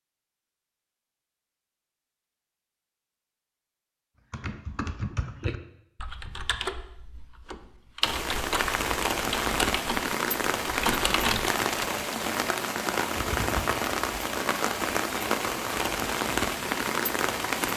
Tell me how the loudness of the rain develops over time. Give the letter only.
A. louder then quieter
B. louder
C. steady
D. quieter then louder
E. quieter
C.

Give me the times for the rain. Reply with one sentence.
You can hear the rain from 8.0 to 17.7 s.